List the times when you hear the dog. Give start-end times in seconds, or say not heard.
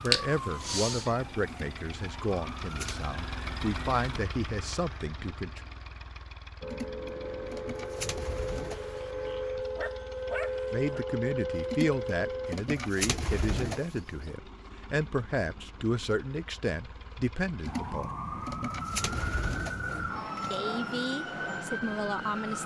8.7-11.1.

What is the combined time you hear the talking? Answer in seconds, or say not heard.
15 s.